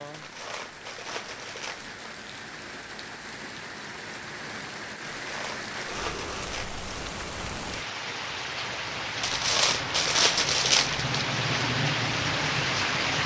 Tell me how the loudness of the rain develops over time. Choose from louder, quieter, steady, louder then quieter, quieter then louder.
louder.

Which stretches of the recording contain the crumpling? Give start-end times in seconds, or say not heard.
0.1-1.9, 5.1-6.8, 9.2-11.1.